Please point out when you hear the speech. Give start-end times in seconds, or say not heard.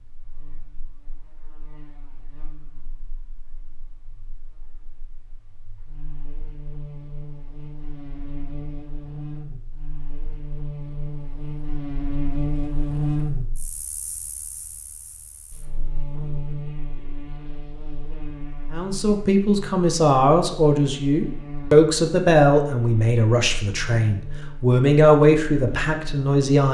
18.7-26.6.